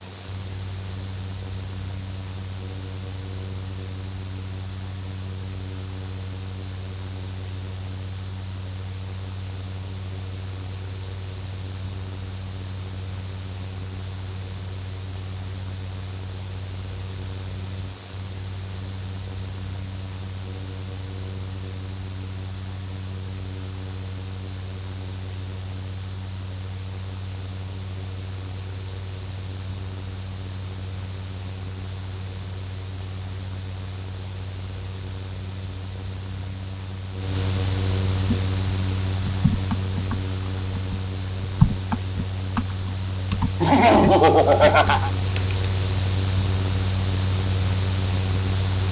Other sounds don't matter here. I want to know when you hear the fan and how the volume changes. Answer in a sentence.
You can hear the fan from 0.0 to 48.8 s, getting louder.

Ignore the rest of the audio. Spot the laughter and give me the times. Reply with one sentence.
You can hear the laughter from 43.6 to 45.1 s.